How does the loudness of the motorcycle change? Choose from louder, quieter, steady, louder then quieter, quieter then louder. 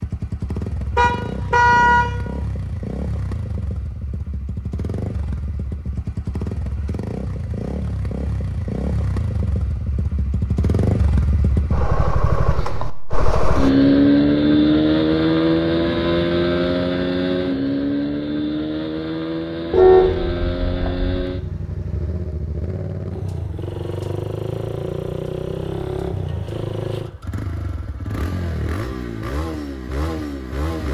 louder then quieter.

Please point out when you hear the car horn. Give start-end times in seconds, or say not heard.
0.9-2.0, 19.7-21.2.